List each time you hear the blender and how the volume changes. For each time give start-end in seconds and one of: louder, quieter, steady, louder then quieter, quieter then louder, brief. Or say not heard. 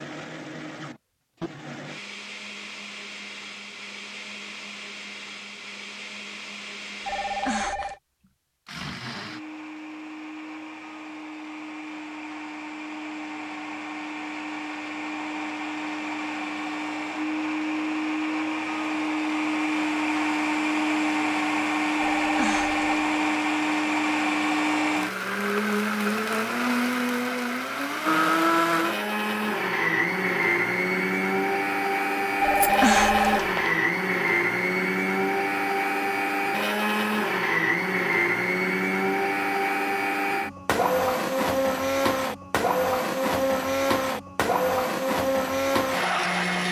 0.0-46.6 louder.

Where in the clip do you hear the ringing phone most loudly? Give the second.
33 s.